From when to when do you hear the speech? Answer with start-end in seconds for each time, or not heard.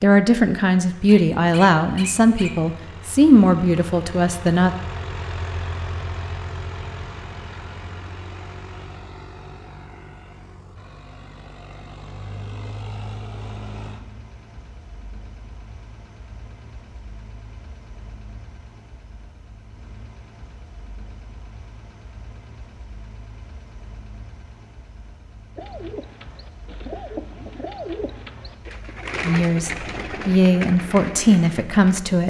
0.0-4.8, 29.2-32.2.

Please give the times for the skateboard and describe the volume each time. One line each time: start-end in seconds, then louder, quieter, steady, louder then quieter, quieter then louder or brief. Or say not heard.
not heard.